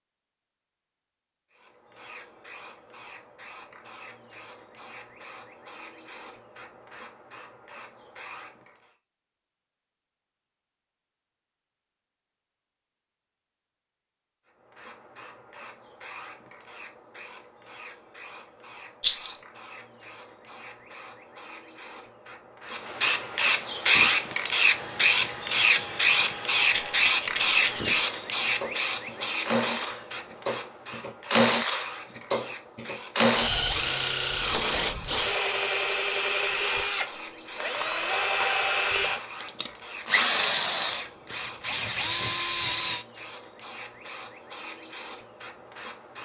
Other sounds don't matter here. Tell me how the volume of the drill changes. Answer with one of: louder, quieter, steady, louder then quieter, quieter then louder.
louder.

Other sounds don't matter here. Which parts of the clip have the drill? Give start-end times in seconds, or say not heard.
23.8-43.0.